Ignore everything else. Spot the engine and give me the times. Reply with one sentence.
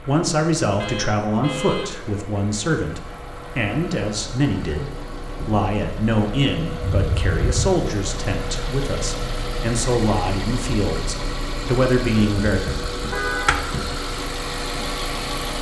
You can hear the engine from 0.0 to 15.5 s.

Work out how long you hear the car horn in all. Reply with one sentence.
The car horn can be heard for 3 seconds in total.